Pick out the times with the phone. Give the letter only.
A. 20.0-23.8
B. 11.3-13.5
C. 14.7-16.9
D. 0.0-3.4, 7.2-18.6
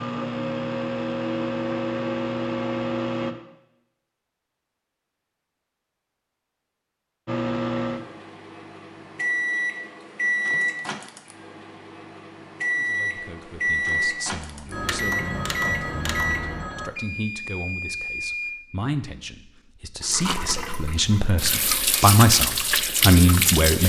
C.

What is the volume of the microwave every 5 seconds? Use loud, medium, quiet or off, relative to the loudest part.
loud, loud, loud, loud, off.